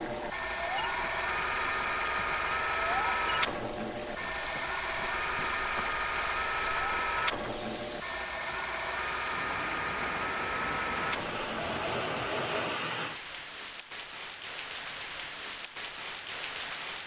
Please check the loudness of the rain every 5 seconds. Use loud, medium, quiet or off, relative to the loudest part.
medium, medium, loud, loud.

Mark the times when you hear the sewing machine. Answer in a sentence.
The sewing machine can be heard from 0.0 to 12.8 s.